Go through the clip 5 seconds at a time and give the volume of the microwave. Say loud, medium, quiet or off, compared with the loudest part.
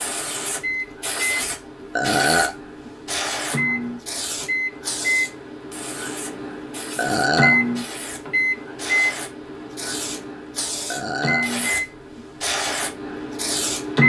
medium, loud, loud.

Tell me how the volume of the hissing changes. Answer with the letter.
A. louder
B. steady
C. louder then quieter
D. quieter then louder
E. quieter
D.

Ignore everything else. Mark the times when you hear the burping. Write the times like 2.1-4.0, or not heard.
1.9-2.5, 7.0-7.6, 10.9-11.5.